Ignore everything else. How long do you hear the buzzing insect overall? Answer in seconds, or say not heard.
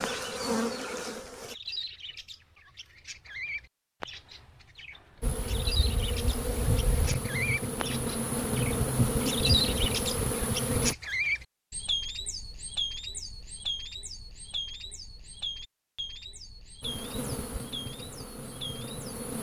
10 s.